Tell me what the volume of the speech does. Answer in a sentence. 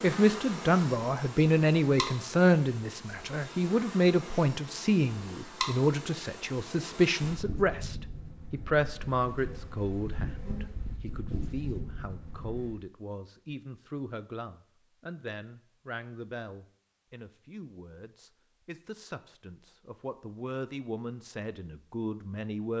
The volume of the speech goes down.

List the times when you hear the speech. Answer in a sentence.
The speech can be heard from 0.0 to 22.7 s.